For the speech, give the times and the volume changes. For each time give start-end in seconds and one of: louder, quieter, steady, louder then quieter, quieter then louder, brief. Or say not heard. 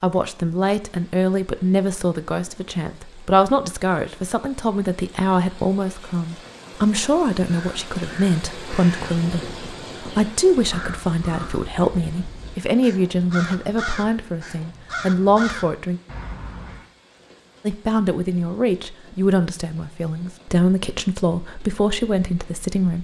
0.0-16.0 steady
17.6-22.9 steady.